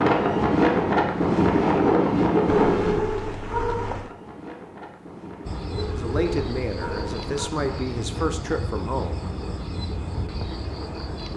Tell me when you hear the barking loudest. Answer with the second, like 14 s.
3 s.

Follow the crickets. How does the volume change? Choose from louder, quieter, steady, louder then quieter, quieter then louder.
steady.